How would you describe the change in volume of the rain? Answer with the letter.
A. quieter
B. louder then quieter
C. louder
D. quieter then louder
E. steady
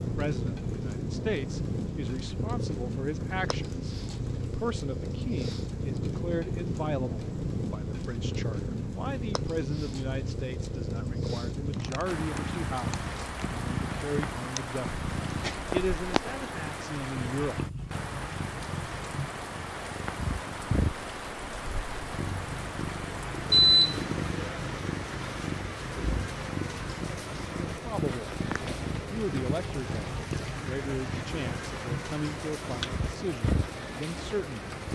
E.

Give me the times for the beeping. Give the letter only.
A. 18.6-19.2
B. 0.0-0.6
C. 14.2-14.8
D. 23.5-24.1
D.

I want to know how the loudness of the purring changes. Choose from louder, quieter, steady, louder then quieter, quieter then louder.
steady.